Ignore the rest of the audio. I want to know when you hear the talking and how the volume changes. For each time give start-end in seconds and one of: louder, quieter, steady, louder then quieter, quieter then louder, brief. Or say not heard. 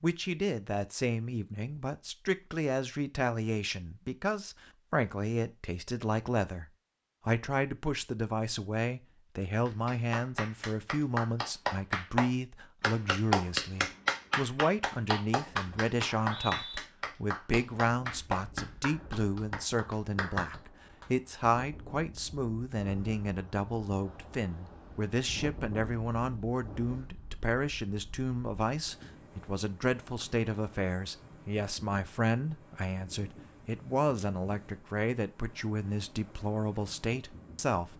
0.0-6.7 steady
7.2-37.9 steady.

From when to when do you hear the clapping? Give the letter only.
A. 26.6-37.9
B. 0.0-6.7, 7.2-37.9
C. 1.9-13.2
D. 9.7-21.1
D.